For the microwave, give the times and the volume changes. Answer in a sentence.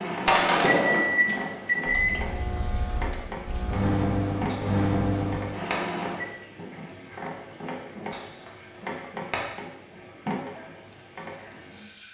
You can hear the microwave from 0.0 to 6.3 s, getting quieter then louder.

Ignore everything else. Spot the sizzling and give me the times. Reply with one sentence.
The sizzling can be heard from 0.0 to 12.0 s.